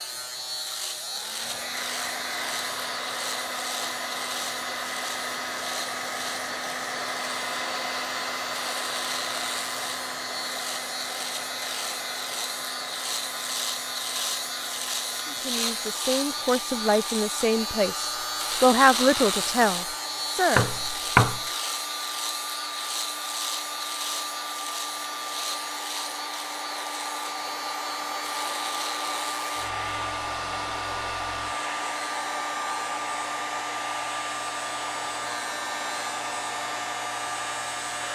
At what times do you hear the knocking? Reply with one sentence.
The knocking can be heard from 20.6 to 21.4 s.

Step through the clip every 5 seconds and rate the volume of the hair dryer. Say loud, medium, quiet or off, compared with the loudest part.
loud, loud, medium, medium, medium, loud, loud, loud.